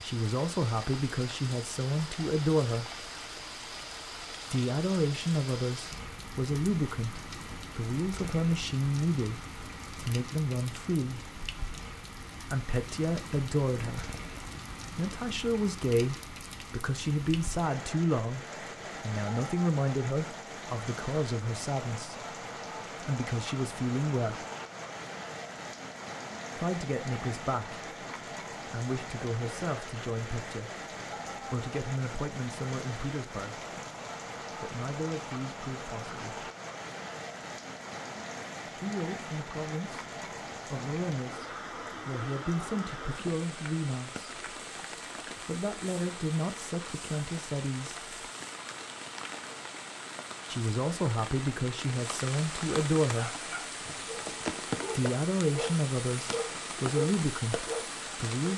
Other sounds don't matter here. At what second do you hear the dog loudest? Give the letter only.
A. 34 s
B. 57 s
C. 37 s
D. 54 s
B.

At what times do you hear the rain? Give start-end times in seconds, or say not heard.
0.0-58.5.